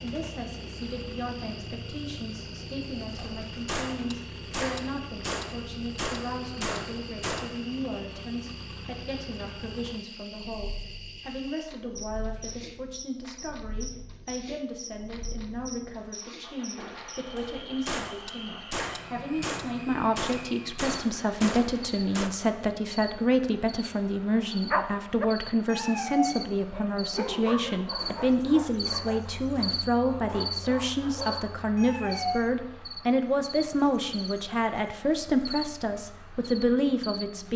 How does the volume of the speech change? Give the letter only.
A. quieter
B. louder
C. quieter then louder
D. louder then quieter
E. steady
B.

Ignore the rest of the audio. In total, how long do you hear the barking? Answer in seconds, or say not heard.
8 s.